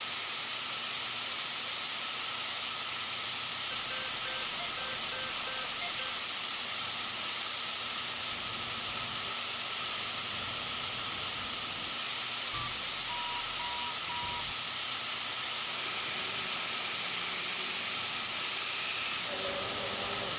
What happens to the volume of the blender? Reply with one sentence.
The volume of the blender stays about the same.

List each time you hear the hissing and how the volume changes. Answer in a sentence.
You can hear the hissing from 0.0 to 20.3 s, at a steady volume.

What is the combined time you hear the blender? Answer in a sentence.
You can hear the blender for 5 seconds altogether.